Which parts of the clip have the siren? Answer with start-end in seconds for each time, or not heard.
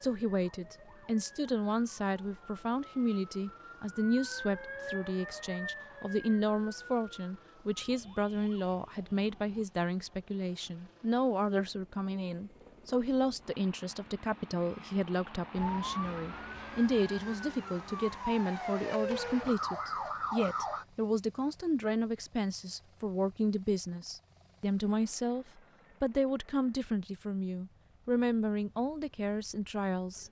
0.0-9.7, 15.6-20.9.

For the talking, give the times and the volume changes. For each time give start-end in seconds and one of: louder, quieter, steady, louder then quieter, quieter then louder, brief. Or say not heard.
0.0-30.2 steady.